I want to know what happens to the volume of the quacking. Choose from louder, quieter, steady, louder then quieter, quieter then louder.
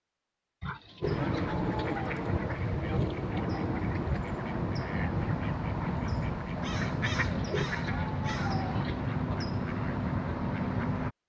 steady.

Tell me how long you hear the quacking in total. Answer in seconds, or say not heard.
10 s.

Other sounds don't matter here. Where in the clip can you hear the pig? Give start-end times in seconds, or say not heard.
0.6-2.1, 7.2-9.0.